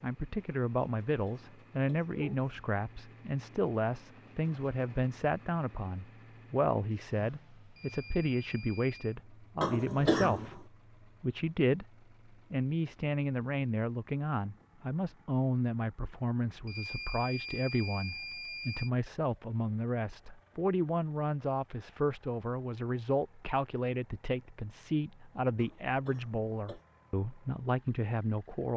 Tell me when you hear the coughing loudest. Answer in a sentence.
The volume of the coughing peaks at 10 seconds.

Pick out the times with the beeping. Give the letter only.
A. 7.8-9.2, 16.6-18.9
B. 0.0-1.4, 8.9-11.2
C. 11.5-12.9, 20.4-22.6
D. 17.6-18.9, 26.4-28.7
A.